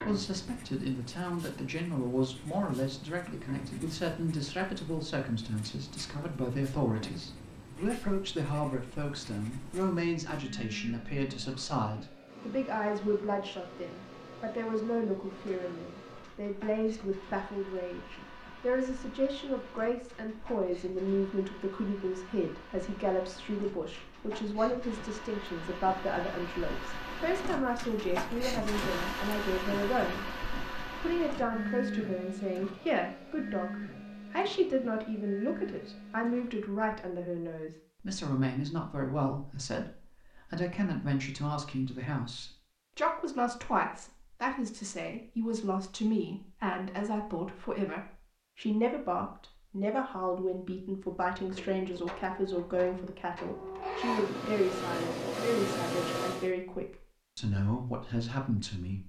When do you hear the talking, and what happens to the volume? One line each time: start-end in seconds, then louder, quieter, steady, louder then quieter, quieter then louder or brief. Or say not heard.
0.0-30.2 steady
30.9-59.0 steady.